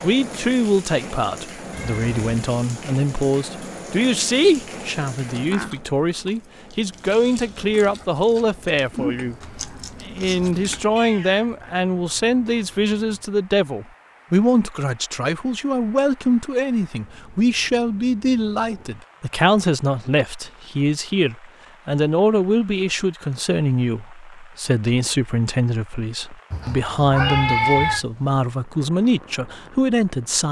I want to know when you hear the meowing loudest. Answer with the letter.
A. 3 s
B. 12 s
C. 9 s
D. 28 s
D.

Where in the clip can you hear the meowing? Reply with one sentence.
The meowing can be heard from 1.7 to 2.2 s, from 10.8 to 11.6 s and from 26.5 to 28.1 s.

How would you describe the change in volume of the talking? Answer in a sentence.
The volume of the talking stays about the same.